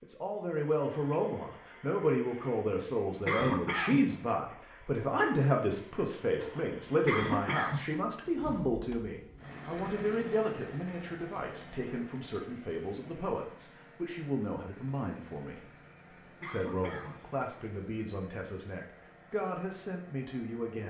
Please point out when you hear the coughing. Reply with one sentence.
You can hear the coughing from 3.2 to 4.0 s, from 7.0 to 7.8 s and from 16.4 to 17.1 s.